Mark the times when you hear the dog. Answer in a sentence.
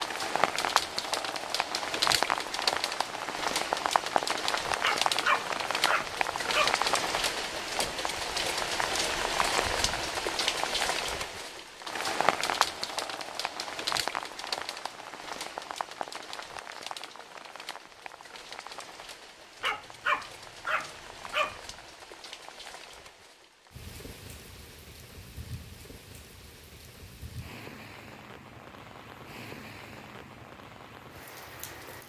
You can hear the dog from 4.8 to 6.8 s and from 19.6 to 21.6 s.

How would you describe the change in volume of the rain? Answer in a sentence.
The volume of the rain goes down.